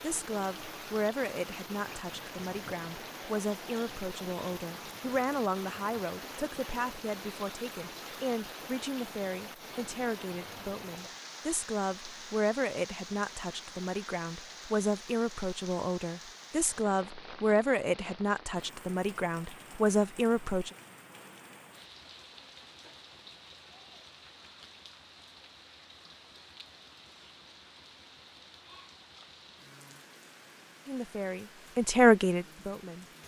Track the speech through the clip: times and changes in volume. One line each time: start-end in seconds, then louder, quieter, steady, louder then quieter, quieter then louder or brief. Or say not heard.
0.0-20.7 louder
30.9-33.0 brief.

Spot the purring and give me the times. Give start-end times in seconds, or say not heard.
not heard.